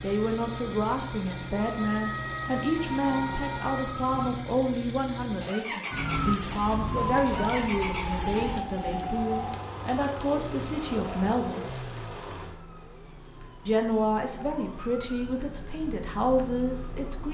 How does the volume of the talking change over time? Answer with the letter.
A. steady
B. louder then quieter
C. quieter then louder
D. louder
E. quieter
A.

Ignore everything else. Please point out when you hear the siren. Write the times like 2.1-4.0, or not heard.
0.0-4.3, 5.9-17.2.